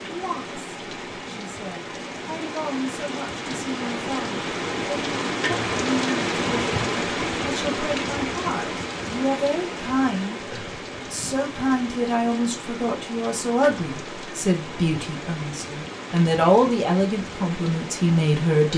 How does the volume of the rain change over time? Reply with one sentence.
The volume of the rain goes up, then down.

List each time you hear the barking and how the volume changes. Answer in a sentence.
You can't hear the barking here.